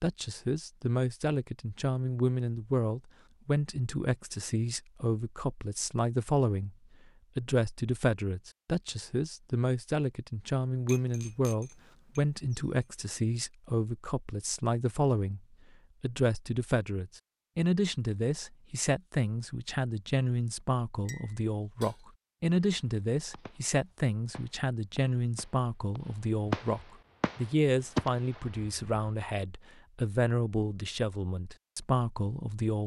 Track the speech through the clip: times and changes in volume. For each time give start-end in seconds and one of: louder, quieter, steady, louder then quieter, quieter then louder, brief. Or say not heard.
0.0-6.8 steady
7.3-15.4 steady
16.0-32.8 steady.